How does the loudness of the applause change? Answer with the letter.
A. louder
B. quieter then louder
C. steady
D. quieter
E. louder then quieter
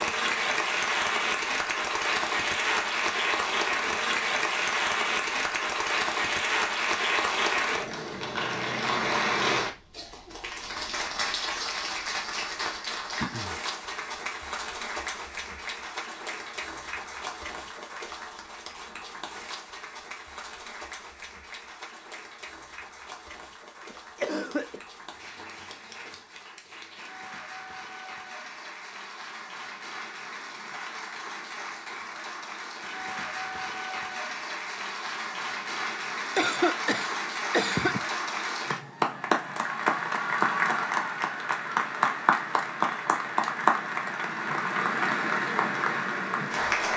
B.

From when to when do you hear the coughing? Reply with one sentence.
The coughing can be heard from 13.2 to 13.6 s, from 23.9 to 24.8 s and from 36.4 to 38.0 s.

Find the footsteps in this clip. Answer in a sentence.
The footsteps can't be heard in this clip.